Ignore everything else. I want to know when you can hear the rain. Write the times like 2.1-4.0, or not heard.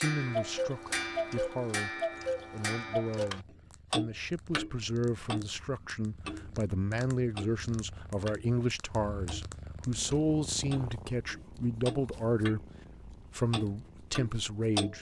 not heard.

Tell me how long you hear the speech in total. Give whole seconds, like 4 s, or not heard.
15 s.